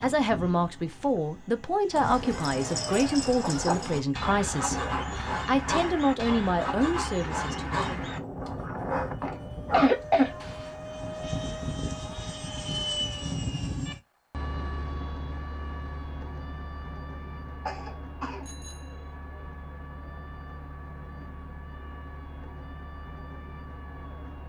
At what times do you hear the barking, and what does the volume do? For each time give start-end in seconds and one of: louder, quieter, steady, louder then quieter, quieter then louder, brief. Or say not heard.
1.9-10.8 steady.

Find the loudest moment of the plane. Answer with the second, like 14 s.
13 s.